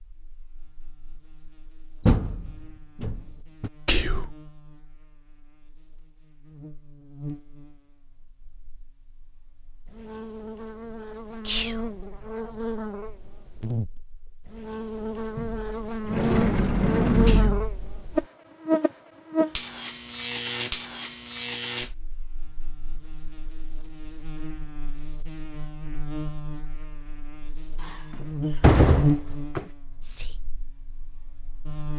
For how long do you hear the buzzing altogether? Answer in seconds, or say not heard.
32 s.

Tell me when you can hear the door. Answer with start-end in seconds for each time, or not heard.
2.0-3.7, 15.3-17.8, 27.8-29.6.